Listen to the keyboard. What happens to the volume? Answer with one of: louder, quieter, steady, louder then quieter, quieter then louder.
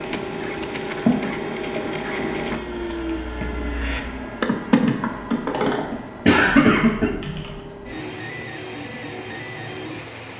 louder then quieter.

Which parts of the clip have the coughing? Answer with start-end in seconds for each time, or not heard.
1.1-2.8, 6.2-7.1.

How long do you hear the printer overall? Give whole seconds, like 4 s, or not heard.
10 s.